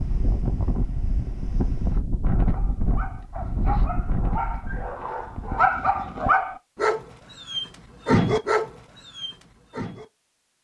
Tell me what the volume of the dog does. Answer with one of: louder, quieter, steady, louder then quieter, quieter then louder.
louder.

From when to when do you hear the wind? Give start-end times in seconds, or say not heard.
0.0-6.3.